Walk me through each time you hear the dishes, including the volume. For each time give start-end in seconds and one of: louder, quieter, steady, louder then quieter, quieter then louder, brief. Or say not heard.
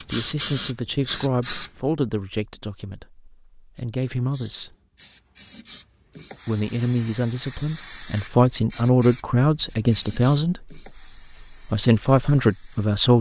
not heard.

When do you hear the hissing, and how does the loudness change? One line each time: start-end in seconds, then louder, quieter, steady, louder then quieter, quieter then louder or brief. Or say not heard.
0.0-1.7 brief
4.3-12.8 louder then quieter.